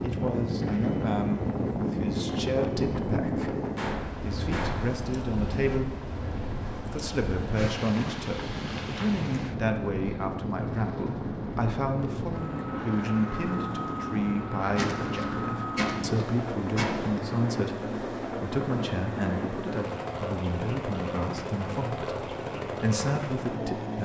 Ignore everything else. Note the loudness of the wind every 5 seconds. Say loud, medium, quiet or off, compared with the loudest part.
loud, medium, medium, off, off.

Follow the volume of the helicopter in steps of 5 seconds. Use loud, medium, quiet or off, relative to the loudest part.
medium, medium, loud, loud, loud.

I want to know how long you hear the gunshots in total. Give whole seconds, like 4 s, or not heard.
4 s.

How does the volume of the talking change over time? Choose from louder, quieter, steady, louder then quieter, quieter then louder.
steady.